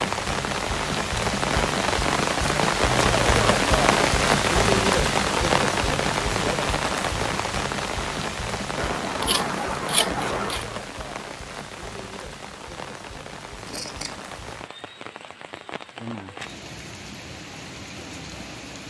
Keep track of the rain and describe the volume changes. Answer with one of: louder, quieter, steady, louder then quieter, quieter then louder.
quieter.